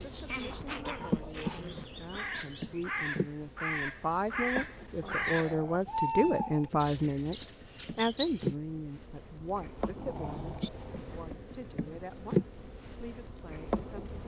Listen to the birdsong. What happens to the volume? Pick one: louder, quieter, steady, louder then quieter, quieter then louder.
louder then quieter.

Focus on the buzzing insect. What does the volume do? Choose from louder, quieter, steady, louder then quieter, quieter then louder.
quieter then louder.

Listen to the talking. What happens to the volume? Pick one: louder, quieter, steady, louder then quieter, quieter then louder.
louder then quieter.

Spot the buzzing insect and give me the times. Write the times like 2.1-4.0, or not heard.
0.0-14.2.